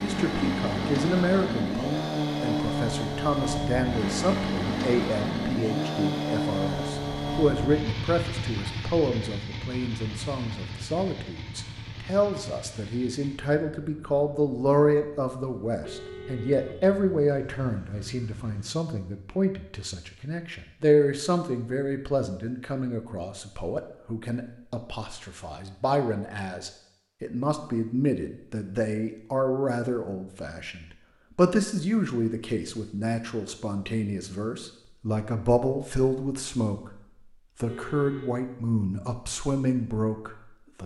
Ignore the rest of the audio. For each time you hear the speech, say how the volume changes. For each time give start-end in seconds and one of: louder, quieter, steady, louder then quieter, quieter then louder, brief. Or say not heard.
0.0-40.8 steady.